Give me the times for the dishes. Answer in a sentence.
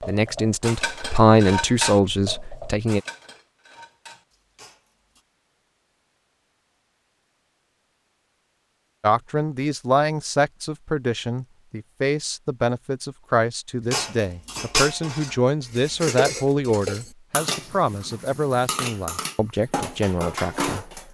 The dishes can be heard from 0.0 to 5.2 s and from 13.9 to 21.0 s.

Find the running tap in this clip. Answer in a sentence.
You can't hear the running tap here.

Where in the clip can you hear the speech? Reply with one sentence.
The speech can be heard from 0.0 to 3.0 s and from 9.0 to 21.0 s.